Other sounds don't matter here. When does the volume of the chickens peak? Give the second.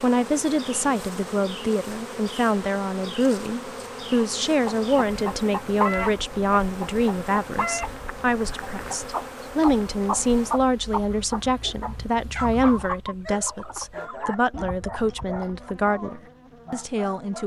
6 s.